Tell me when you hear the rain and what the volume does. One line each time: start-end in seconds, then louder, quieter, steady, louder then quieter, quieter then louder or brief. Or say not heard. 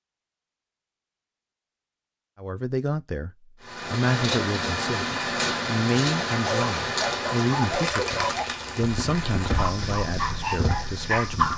3.6-11.5 quieter.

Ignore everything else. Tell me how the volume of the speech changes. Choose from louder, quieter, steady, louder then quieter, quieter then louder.
quieter.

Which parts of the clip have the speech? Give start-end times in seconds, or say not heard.
2.4-11.5.